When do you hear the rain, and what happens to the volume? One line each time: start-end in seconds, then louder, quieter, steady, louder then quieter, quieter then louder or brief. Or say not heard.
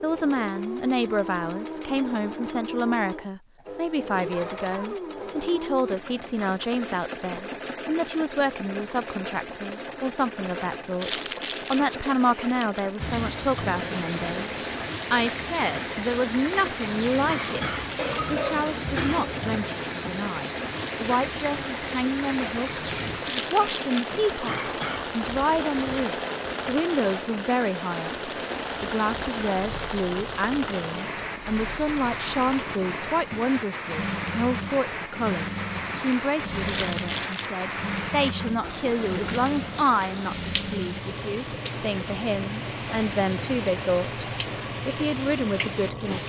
12.9-46.2 steady.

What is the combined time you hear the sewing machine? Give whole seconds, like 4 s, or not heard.
46 s.